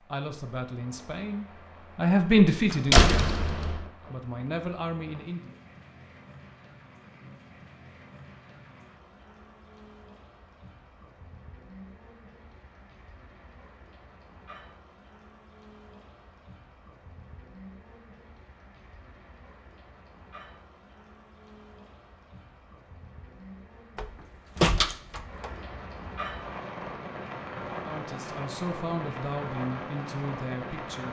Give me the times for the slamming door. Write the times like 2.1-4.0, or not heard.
2.5-3.9, 23.9-25.5.